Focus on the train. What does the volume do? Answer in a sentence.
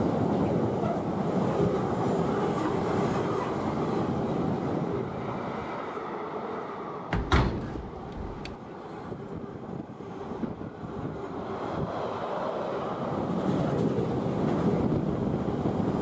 The loudness of the train goes down, then up.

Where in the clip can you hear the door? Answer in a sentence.
The door can be heard from 7.1 to 8.6 s.